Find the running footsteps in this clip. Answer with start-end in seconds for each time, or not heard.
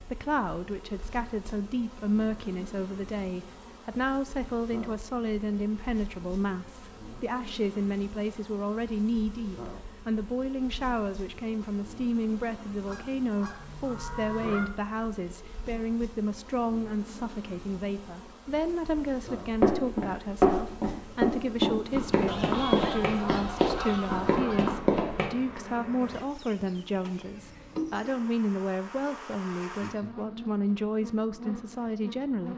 19.6-25.2.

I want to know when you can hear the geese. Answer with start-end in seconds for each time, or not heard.
12.8-14.7, 22.2-24.8.